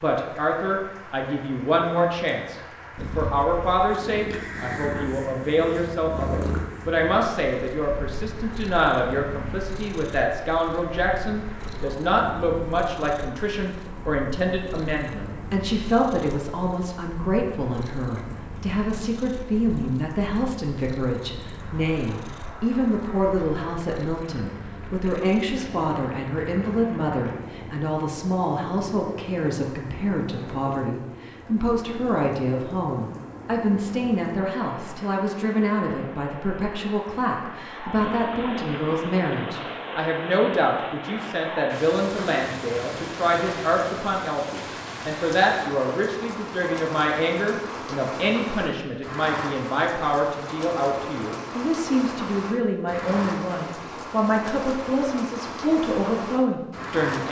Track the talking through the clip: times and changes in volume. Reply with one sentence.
The talking can be heard from 0.0 to 57.2 s, at a steady volume.